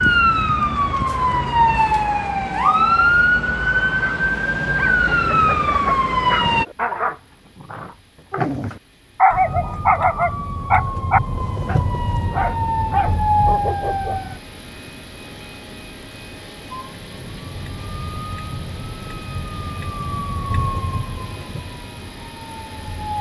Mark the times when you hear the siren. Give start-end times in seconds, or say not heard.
0.0-6.7, 9.3-14.4, 16.7-23.1.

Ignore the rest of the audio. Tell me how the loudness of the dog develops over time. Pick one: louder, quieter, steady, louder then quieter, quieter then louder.
louder then quieter.